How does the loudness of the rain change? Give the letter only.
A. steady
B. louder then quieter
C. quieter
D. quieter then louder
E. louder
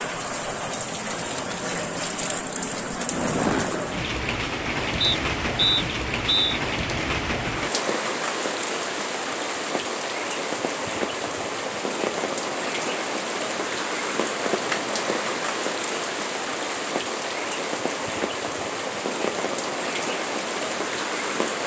A.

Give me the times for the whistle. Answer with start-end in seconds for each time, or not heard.
5.0-6.6.